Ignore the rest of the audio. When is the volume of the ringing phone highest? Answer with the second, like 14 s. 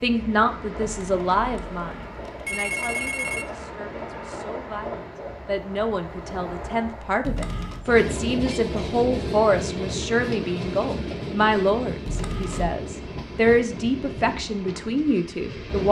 3 s.